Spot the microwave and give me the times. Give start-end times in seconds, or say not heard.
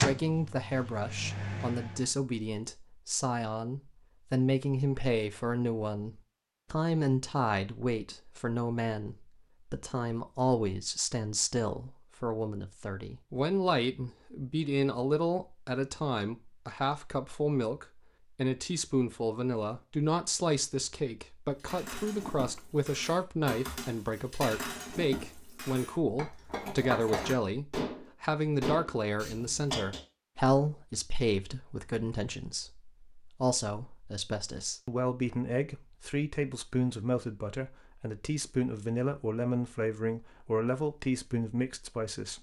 0.0-2.1.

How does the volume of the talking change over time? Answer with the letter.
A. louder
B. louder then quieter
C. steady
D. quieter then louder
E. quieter
C.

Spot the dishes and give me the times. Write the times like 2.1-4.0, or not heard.
21.6-30.0.